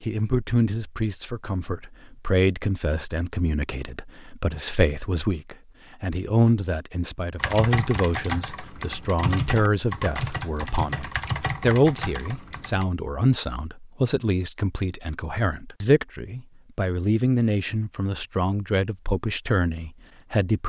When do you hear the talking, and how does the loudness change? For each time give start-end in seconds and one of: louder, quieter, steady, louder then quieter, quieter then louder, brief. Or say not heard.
0.0-20.6 steady.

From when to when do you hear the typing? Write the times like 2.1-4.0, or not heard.
7.3-12.8.